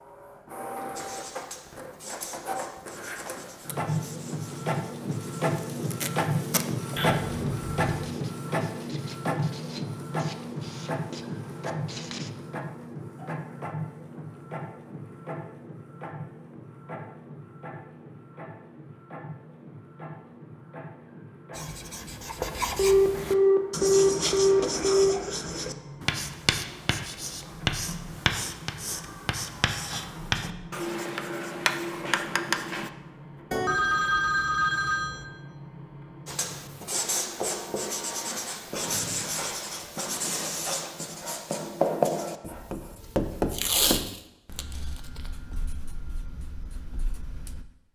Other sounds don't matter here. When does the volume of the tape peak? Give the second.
44 s.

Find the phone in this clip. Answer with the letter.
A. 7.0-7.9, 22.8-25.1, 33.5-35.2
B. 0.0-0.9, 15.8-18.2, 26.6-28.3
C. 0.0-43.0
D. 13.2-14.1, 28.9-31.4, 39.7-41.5
A.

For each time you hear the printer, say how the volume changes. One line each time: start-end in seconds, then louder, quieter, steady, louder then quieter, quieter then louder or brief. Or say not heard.
0.0-43.0 quieter.